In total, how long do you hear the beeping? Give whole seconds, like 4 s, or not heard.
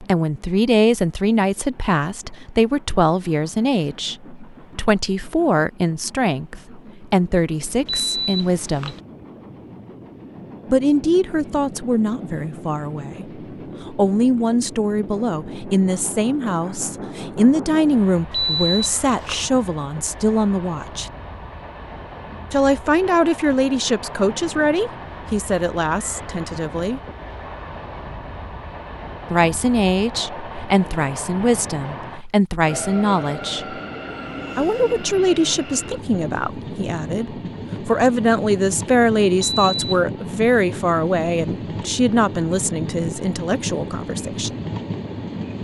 3 s.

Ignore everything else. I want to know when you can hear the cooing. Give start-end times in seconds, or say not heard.
not heard.